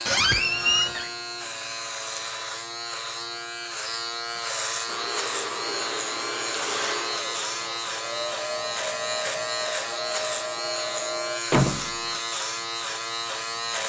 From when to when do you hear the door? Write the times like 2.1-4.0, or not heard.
0.1-1.1, 11.5-12.2.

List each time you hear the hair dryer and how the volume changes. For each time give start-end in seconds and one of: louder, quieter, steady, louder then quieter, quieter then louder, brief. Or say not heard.
4.8-11.4 steady.